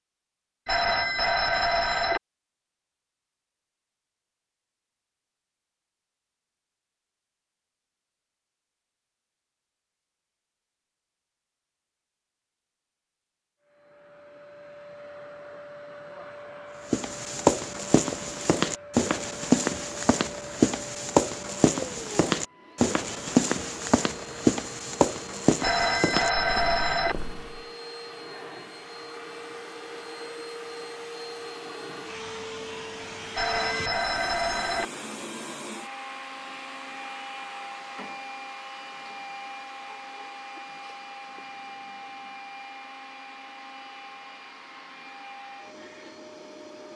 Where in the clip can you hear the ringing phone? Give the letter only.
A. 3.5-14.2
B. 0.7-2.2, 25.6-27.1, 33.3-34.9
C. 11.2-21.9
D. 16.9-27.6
B.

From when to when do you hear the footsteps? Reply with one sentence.
You can hear the footsteps from 16.9 to 27.6 s.